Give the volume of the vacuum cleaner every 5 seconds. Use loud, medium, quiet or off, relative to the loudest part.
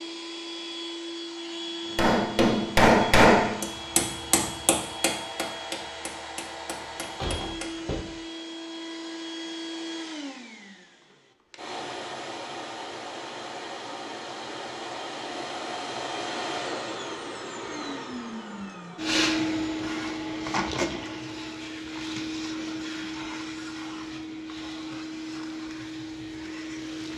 medium, medium, medium, loud, loud, medium.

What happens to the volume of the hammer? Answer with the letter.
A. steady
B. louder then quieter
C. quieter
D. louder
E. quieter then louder
C.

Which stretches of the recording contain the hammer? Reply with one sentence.
The hammer can be heard from 1.9 to 7.7 s.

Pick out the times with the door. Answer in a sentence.
You can hear the door from 6.8 to 8.1 s.